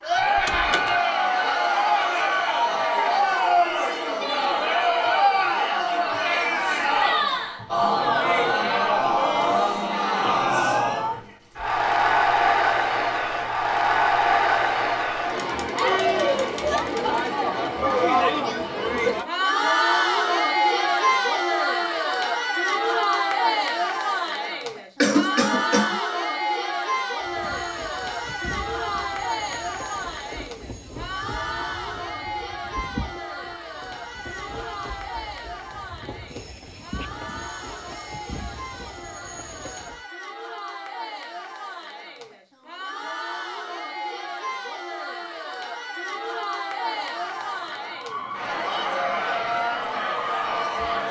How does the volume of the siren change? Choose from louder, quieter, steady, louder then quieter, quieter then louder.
louder.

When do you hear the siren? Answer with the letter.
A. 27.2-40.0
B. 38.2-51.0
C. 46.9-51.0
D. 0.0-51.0
C.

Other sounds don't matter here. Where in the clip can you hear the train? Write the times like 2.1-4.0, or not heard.
27.2-40.0.